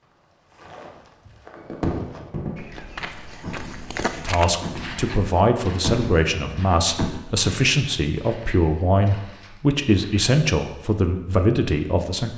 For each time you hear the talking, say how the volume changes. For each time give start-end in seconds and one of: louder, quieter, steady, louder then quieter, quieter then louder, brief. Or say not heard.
4.2-12.3 steady.